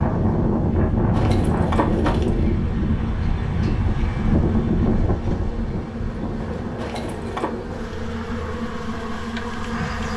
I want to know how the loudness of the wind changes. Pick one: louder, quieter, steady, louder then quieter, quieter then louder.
quieter.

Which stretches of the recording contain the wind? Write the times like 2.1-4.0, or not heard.
0.0-10.1.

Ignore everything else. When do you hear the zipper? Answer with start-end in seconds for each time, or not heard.
1.1-2.5, 6.8-7.5.